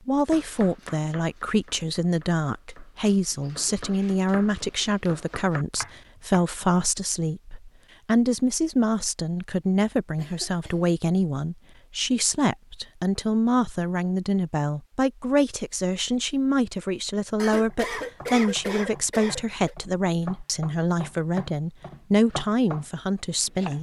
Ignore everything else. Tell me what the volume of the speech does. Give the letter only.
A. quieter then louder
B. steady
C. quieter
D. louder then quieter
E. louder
B.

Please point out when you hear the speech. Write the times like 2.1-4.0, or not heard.
0.1-23.7.